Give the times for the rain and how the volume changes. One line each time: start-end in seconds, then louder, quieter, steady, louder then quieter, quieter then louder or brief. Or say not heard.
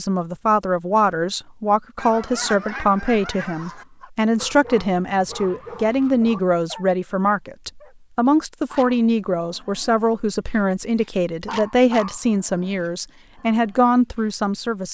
not heard.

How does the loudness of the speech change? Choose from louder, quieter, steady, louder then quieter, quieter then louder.
steady.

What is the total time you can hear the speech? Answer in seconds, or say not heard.
15 s.